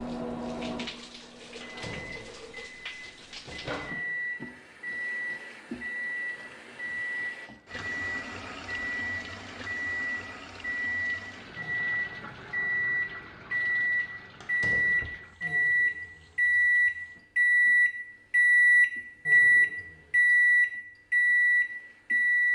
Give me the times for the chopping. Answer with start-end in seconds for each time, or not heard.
not heard.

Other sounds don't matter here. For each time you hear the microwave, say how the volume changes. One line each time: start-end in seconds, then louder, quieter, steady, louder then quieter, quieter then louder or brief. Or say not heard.
0.0-22.4 louder.